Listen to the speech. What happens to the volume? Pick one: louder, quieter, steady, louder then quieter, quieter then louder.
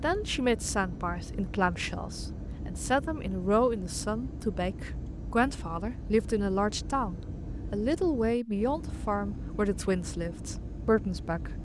steady.